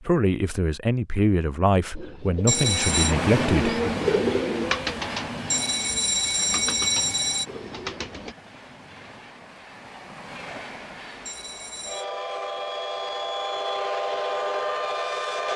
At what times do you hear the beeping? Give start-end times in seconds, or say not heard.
2.5-3.1, 5.5-7.5, 11.2-12.1.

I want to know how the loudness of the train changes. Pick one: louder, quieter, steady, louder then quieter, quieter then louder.
quieter then louder.